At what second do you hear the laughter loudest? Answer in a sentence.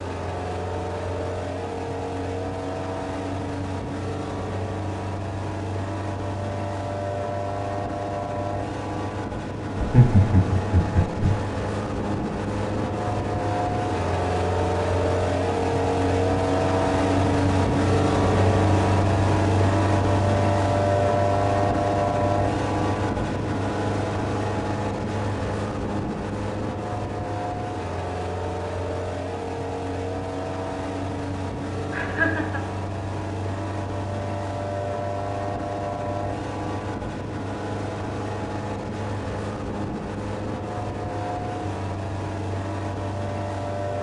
The loudest moment of the laughter is at 10 seconds.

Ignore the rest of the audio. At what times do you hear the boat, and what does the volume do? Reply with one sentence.
The boat can be heard from 0.0 to 43.9 s, getting louder then quieter.